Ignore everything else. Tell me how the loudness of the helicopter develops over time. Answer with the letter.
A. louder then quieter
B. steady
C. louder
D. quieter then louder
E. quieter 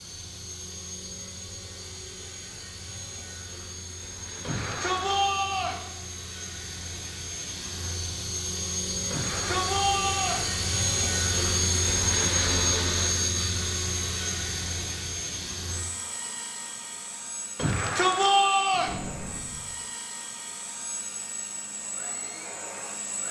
A.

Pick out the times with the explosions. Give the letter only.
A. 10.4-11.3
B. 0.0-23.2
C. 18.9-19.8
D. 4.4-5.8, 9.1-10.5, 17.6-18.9
C.